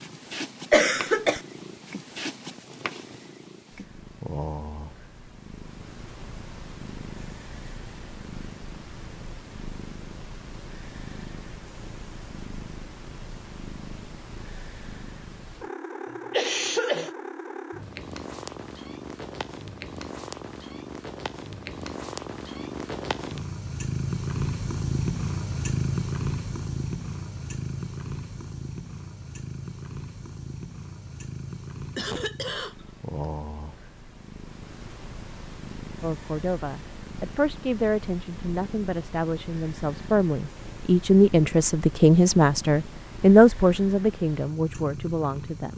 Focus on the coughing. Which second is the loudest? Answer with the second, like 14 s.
1 s.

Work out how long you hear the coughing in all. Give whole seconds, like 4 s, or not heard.
3 s.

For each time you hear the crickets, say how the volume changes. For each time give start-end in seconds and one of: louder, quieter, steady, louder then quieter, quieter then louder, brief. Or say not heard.
not heard.